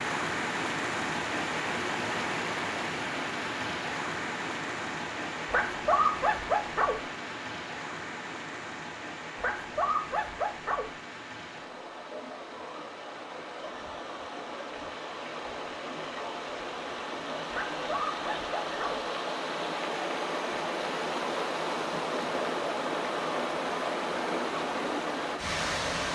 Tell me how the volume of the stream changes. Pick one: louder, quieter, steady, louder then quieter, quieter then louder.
quieter then louder.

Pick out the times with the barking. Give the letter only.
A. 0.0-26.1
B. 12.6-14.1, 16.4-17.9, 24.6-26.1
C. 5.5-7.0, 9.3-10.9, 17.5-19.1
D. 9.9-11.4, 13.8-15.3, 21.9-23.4
C.